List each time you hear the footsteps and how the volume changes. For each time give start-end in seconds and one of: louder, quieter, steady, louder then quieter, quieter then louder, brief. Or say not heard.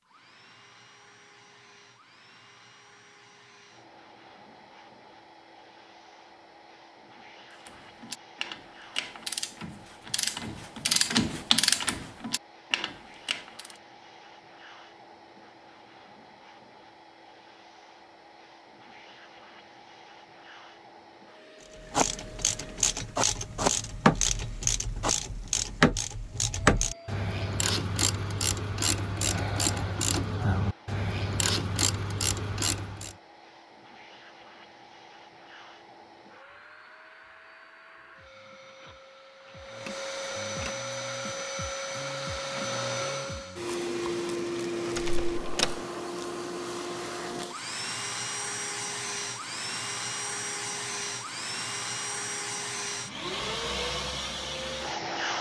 not heard.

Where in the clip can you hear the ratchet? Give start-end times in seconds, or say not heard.
7.6-13.8, 21.8-33.1.